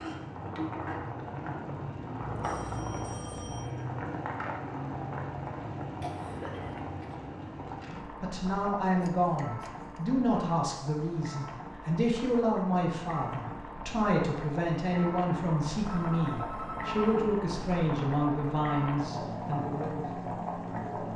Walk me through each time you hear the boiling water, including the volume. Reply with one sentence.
The boiling water can be heard from 0.0 to 21.1 s, getting quieter then louder.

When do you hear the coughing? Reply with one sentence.
You can hear the coughing from 6.0 to 7.2 s.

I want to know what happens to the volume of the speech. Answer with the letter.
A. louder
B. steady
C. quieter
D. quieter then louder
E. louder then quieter
B.